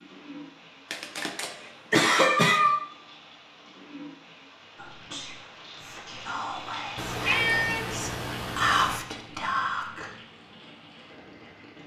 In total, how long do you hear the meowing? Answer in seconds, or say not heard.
3 s.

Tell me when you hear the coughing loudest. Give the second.
2 s.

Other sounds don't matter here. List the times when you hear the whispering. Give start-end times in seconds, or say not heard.
4.8-10.1.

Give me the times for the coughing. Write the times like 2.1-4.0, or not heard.
0.9-2.6.